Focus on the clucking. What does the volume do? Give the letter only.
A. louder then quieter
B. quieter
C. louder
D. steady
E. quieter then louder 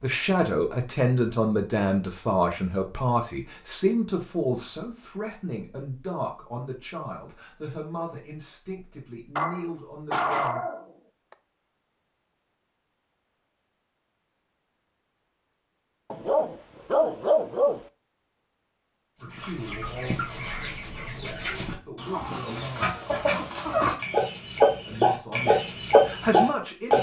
C.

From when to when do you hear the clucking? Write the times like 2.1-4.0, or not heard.
19.2-26.9.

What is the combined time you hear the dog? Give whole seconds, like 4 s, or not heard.
4 s.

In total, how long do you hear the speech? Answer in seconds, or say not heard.
17 s.